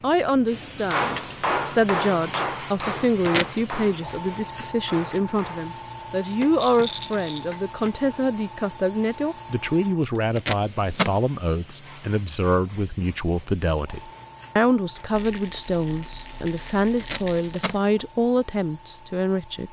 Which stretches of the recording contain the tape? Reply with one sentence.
The tape can be heard from 2.9 to 3.7 s, from 10.0 to 11.2 s and from 16.9 to 17.8 s.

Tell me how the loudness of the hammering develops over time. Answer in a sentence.
The volume of the hammering goes down.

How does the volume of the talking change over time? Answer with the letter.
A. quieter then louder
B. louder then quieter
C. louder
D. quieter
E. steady
E.